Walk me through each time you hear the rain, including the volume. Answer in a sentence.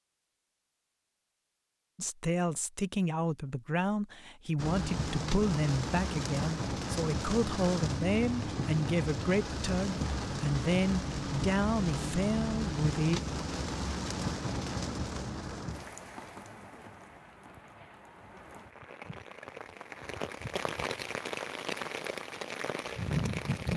The rain can be heard from 4.5 to 23.7 s, getting quieter then louder.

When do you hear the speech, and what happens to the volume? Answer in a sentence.
The speech can be heard from 1.9 to 13.2 s, at a steady volume.